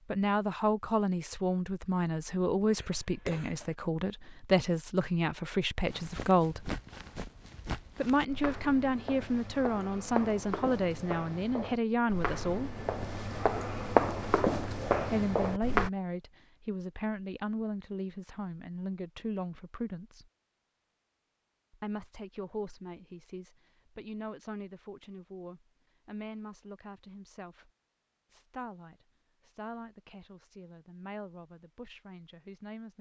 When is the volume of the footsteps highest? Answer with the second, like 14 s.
14 s.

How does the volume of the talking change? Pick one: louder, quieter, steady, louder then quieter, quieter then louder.
quieter.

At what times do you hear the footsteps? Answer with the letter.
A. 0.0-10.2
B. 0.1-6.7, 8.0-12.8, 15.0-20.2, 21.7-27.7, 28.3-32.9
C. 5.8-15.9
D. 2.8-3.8
C.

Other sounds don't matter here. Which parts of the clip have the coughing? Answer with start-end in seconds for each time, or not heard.
2.8-3.8.